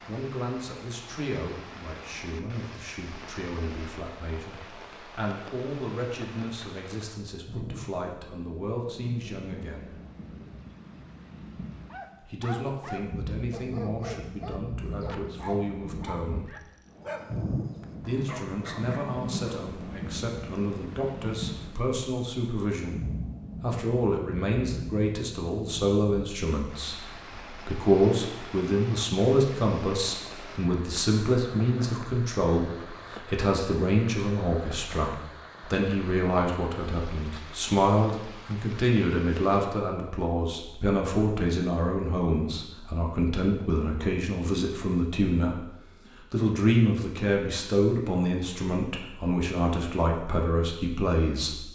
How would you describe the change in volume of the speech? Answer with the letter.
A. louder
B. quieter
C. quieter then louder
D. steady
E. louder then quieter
A.